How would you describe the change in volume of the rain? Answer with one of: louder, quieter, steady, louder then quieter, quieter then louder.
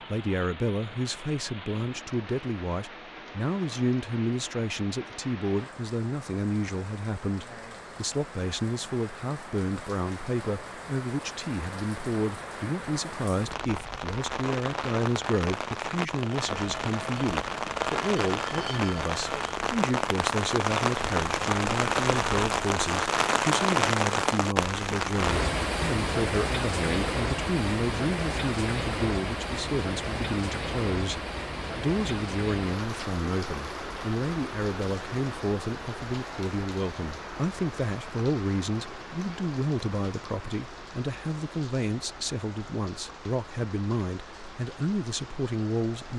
louder then quieter.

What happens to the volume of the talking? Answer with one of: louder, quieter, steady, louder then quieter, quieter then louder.
steady.